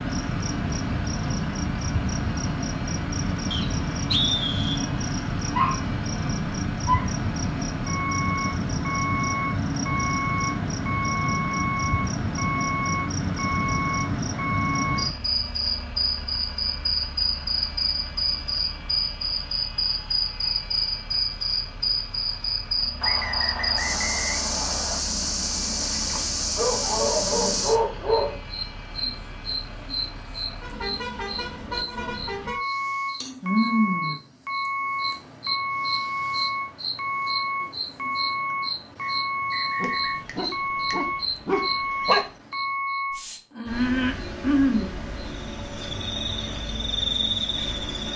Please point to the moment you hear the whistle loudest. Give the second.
4 s.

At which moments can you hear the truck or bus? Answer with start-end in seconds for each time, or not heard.
0.0-48.1.